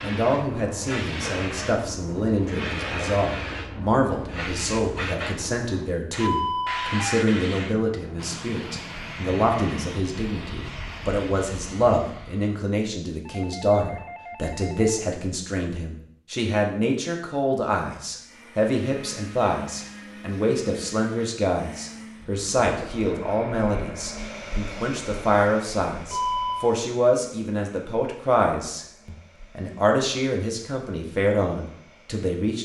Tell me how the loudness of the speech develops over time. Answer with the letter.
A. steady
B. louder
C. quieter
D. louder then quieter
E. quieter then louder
A.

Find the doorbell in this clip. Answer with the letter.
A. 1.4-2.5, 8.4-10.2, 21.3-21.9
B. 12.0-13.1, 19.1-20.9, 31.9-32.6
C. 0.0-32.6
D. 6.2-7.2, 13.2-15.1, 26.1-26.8
D.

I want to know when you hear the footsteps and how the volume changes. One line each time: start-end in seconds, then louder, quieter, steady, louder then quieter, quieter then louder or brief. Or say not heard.
not heard.